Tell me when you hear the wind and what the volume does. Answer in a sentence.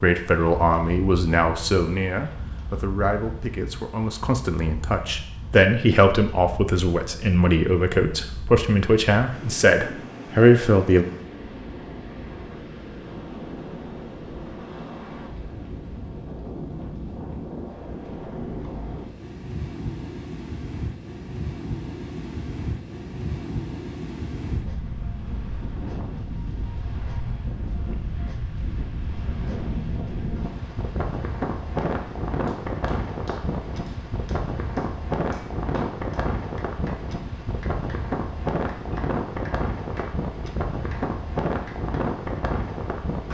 The wind can be heard from 0.0 to 43.2 s, getting louder.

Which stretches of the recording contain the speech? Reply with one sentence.
The speech can be heard from 0.0 to 11.1 s.